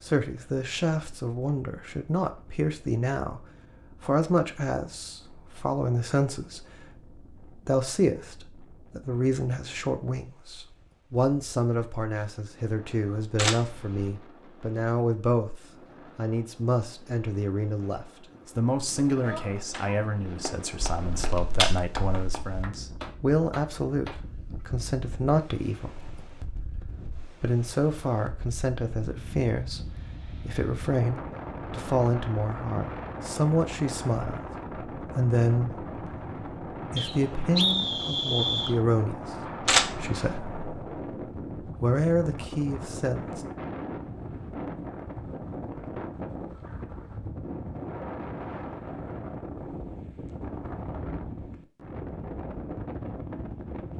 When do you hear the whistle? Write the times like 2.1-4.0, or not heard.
37.0-38.8.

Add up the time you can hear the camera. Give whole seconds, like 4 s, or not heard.
3 s.